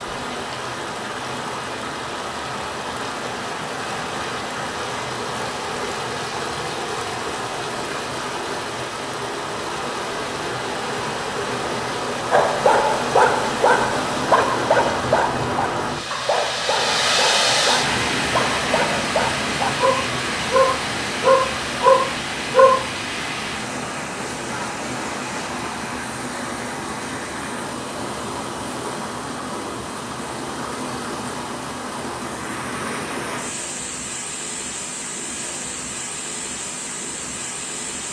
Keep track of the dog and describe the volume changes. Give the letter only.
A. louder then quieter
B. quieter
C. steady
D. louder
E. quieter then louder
E.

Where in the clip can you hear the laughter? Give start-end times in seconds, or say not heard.
not heard.